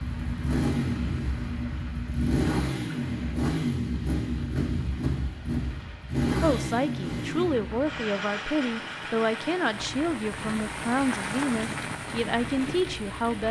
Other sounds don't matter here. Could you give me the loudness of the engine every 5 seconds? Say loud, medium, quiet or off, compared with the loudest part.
loud, loud, quiet.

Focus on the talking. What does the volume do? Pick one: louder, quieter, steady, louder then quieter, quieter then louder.
steady.